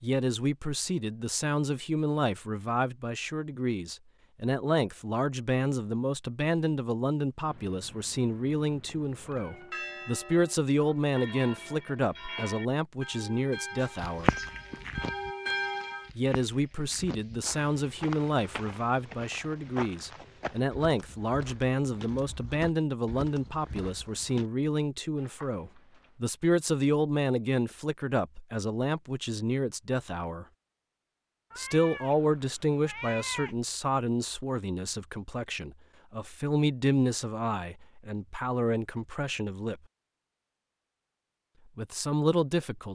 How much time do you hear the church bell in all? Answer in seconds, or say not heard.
7 s.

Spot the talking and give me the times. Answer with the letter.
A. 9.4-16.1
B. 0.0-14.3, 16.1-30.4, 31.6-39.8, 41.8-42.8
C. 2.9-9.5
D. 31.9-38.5
B.